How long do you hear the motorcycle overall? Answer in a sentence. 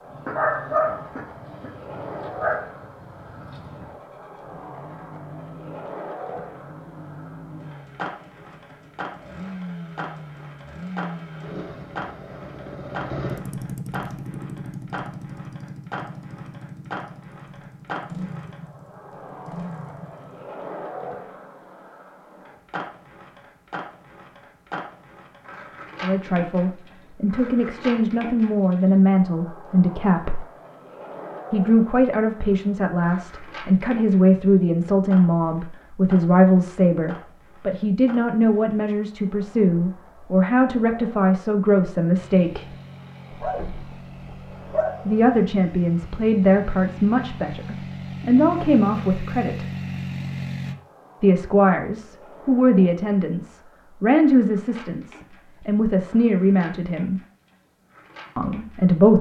You can hear the motorcycle for 29 seconds altogether.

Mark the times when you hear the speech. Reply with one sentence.
You can hear the speech from 26.0 to 30.4 s, from 31.5 to 42.8 s, from 45.0 to 49.6 s, from 51.2 to 57.2 s and from 58.4 to 59.1 s.